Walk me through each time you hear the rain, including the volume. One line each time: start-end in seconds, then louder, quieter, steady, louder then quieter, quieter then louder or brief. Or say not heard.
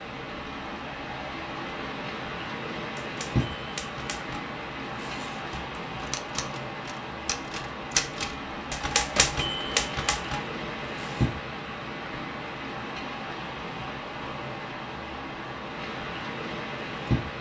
0.0-17.3 steady.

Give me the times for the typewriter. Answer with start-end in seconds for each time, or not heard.
3.0-11.3.